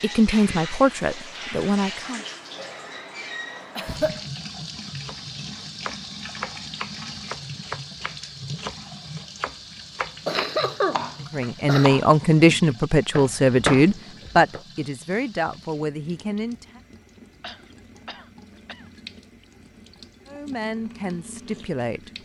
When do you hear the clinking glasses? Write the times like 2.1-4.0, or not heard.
not heard.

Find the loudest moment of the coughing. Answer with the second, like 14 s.
11 s.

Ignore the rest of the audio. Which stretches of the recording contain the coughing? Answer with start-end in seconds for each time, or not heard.
3.8-4.4, 10.2-11.8, 17.4-18.9.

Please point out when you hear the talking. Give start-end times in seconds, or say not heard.
0.0-2.2, 11.3-16.8, 20.2-22.2.